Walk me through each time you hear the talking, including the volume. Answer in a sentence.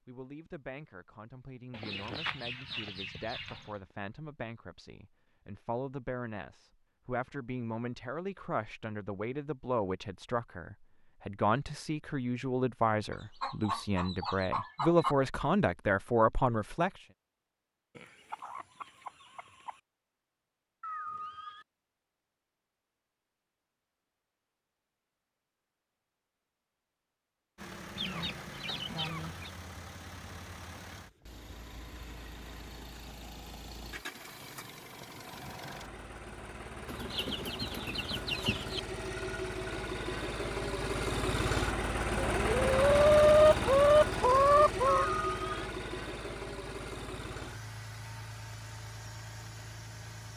The talking can be heard from 0.1 to 16.9 s, getting louder.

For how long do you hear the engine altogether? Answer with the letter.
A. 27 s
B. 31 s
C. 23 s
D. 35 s
C.